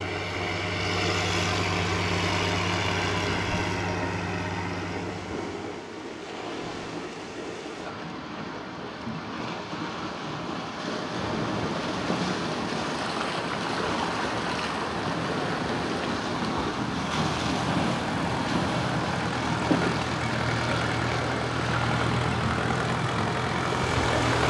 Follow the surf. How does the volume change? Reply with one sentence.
The loudness of the surf goes up.